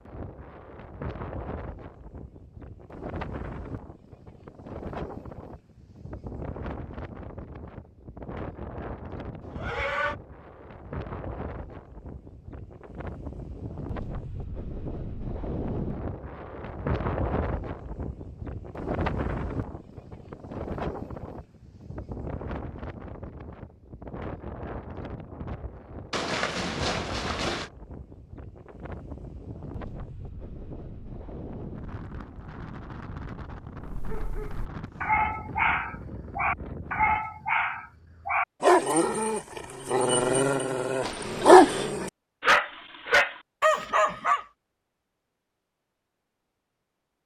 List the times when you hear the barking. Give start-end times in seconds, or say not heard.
33.8-44.5.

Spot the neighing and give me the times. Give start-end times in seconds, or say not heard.
9.4-10.2, 26.1-27.7, 41.0-42.0.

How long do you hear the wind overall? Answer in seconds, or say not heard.
37 s.